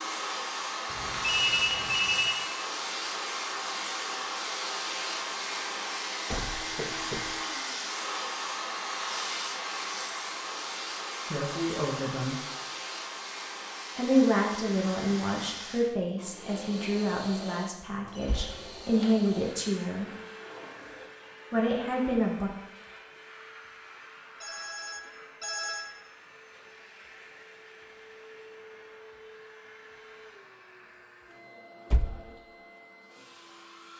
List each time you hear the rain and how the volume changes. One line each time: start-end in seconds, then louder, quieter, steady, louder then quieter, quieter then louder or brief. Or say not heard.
not heard.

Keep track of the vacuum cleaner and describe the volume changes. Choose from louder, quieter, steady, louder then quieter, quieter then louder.
quieter.